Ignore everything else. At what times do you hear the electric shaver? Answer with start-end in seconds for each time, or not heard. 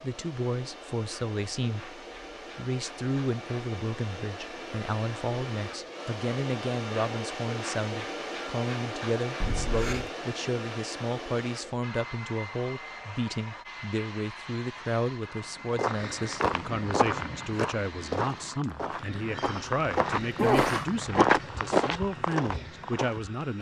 not heard.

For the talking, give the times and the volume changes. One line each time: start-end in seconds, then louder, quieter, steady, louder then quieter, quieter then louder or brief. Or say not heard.
0.0-23.5 steady.